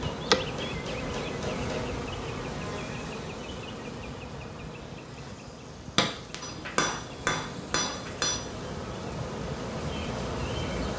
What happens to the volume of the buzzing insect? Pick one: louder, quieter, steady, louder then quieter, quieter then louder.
quieter then louder.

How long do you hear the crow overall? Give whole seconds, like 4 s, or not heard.
not heard.